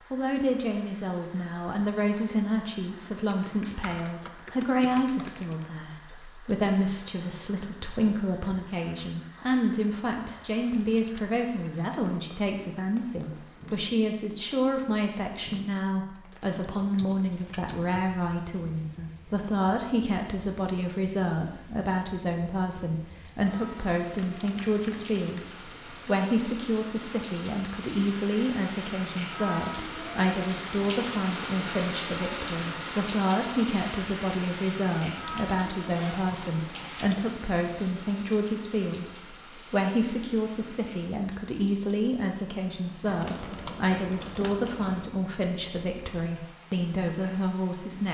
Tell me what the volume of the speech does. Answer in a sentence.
The loudness of the speech stays about the same.